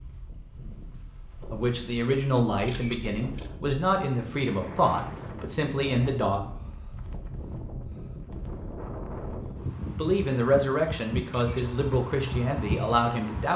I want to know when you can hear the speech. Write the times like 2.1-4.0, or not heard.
1.5-6.5, 9.9-13.5.